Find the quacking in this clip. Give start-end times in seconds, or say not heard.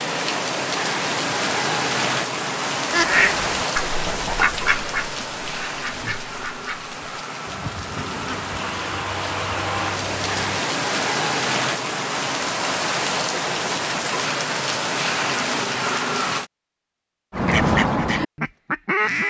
2.9-10.4, 17.3-19.2.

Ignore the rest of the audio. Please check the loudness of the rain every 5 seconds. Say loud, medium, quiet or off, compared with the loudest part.
loud, medium, loud, loud.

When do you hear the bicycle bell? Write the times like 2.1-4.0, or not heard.
not heard.